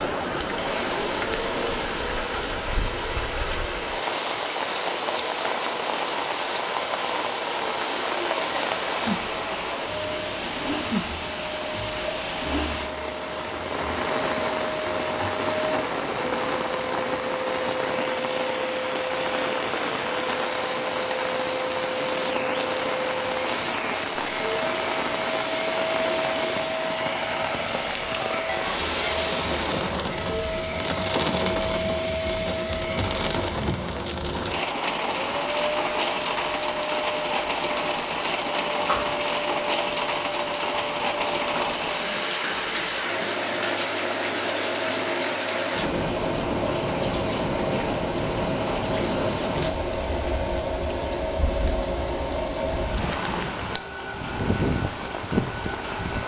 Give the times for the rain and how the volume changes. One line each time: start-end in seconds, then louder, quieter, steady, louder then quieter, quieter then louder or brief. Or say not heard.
0.0-56.2 steady.